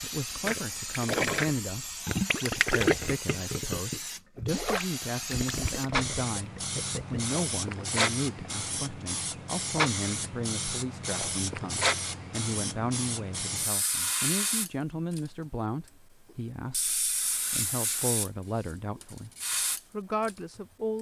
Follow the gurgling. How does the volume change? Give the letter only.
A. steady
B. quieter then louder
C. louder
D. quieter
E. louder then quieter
D.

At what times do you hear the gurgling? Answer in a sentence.
You can hear the gurgling from 0.4 to 7.2 s.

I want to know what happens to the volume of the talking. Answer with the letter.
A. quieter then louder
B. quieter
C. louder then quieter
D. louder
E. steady
E.